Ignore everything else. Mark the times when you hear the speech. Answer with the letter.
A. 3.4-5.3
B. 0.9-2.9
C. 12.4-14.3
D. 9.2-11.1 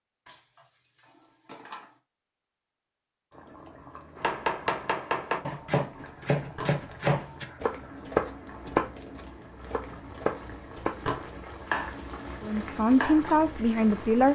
C.